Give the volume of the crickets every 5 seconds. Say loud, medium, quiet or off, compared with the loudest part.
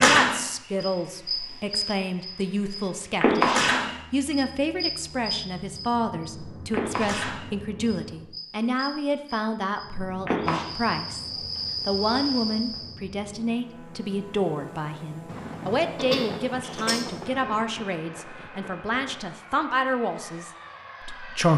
loud, medium, medium, off, off.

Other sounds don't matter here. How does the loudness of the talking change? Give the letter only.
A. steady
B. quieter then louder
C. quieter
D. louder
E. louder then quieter
A.